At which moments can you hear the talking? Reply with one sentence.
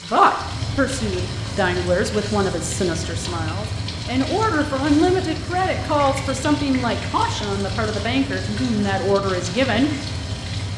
The talking can be heard from 0.0 to 9.9 s.